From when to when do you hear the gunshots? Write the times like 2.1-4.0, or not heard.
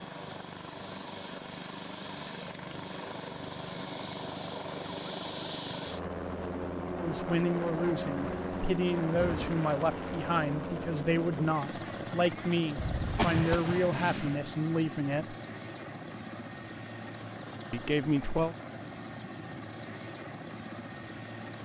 12.8-14.3.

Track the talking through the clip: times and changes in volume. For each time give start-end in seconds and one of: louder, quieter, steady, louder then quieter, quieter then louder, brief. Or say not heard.
7.0-15.3 steady
17.7-18.6 brief.